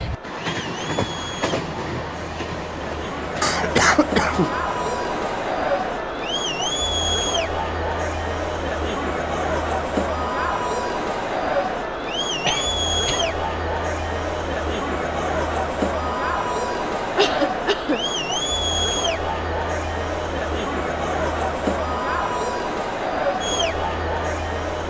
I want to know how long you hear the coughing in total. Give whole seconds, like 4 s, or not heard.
3 s.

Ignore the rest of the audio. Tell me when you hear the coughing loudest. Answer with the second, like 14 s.
4 s.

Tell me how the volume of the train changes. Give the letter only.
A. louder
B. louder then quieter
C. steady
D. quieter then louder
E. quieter
E.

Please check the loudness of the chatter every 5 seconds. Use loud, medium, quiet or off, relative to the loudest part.
medium, loud, loud, loud, loud.